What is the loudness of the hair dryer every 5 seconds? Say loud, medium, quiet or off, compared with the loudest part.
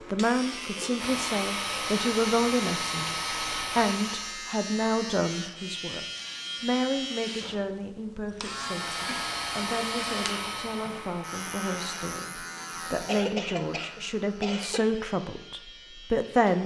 loud, loud, loud, off.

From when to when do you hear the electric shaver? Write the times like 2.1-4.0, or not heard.
0.0-16.6.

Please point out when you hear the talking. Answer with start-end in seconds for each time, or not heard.
0.1-16.6.